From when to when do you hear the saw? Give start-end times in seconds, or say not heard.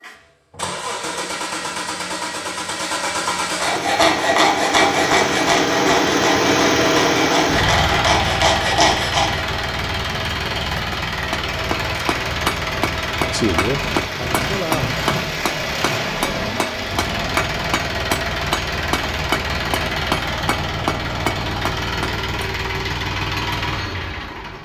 3.5-9.4.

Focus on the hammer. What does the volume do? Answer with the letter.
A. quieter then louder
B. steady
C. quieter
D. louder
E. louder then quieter
B.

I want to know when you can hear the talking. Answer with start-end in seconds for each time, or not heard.
13.3-14.9.